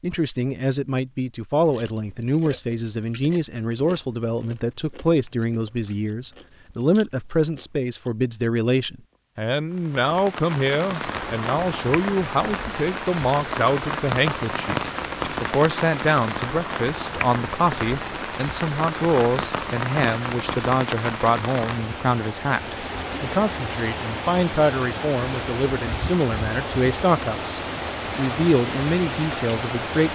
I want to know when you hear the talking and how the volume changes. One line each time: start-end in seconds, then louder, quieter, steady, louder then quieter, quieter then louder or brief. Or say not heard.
0.0-30.1 steady.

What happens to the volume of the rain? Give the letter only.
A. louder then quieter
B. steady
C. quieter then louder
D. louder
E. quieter
B.